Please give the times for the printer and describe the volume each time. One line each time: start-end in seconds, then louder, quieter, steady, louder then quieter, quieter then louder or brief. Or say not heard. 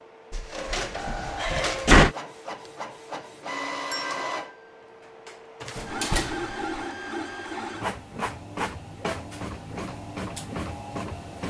0.0-11.4 steady.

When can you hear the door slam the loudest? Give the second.
2 s.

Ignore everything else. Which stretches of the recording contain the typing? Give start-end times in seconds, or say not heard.
not heard.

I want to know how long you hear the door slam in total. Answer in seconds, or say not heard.
3 s.